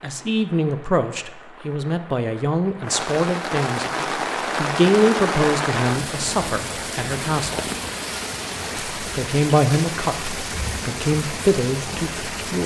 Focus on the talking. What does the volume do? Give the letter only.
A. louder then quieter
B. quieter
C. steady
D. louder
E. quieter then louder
C.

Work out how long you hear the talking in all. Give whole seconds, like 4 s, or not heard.
11 s.